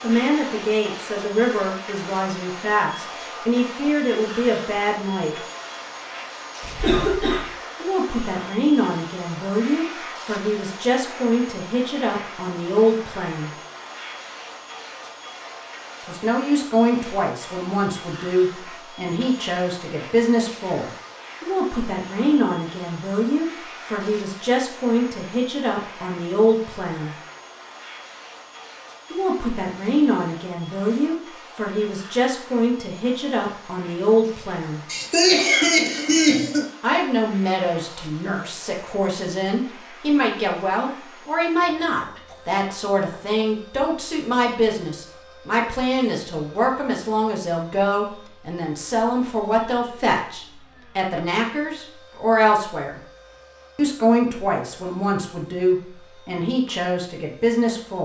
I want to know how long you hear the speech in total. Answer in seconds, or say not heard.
48 s.